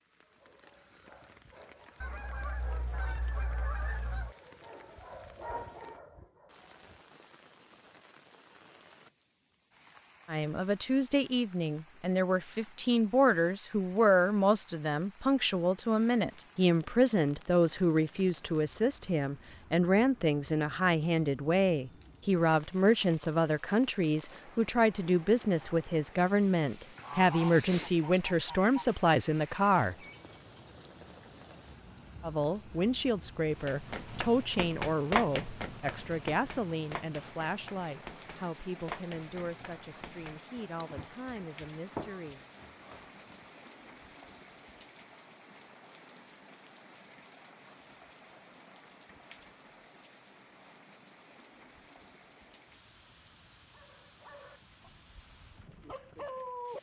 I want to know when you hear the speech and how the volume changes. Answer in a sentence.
You can hear the speech from 10.2 to 29.9 s, at a steady volume; and from 32.2 to 42.4 s, getting quieter.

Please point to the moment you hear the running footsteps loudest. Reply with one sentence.
The volume of the running footsteps peaks at 35 seconds.